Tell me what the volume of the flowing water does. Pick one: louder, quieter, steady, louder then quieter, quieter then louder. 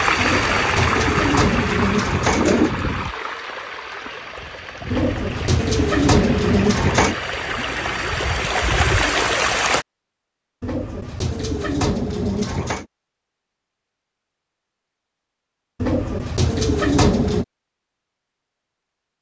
quieter then louder.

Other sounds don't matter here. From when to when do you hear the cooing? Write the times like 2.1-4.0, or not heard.
0.1-2.7, 4.9-7.2, 10.6-12.8, 15.8-17.4.